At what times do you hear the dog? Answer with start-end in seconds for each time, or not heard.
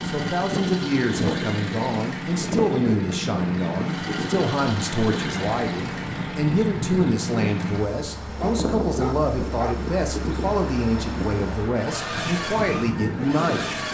8.3-9.8.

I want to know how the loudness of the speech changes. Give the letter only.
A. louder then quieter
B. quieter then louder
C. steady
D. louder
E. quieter
C.